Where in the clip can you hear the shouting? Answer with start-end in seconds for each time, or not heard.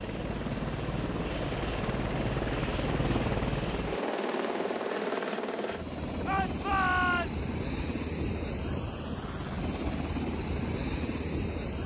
6.2-7.5.